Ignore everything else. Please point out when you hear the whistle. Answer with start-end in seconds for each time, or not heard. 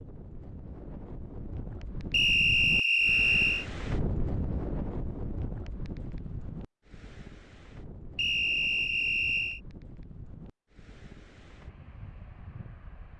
2.1-3.6, 8.2-9.6.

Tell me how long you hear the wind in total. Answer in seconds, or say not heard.
13 s.